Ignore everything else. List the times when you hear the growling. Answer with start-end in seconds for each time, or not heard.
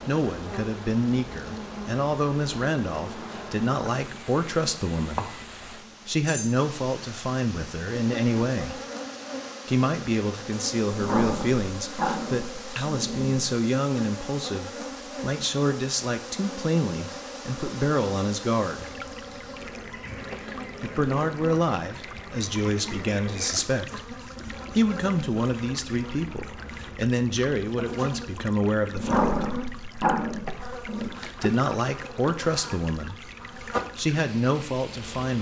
10.9-13.3, 28.9-31.1.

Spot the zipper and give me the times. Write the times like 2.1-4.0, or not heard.
not heard.